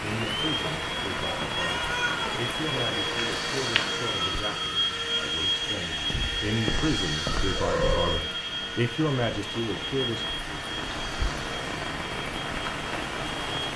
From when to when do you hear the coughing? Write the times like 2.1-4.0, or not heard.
not heard.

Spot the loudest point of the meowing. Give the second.
8 s.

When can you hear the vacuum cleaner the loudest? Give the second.
5 s.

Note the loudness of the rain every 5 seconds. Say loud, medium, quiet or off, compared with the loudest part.
loud, medium, loud.